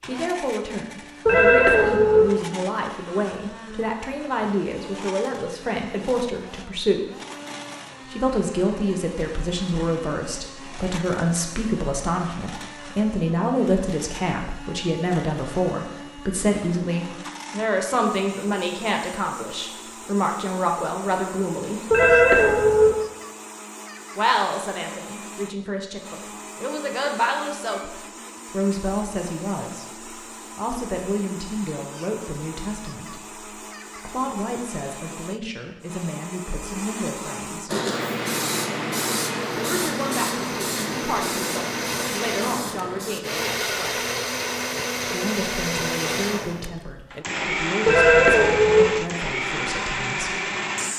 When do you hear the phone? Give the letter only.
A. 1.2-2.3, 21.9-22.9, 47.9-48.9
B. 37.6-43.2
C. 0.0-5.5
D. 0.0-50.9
A.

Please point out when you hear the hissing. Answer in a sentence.
The hissing can be heard from 37.6 to 43.2 s.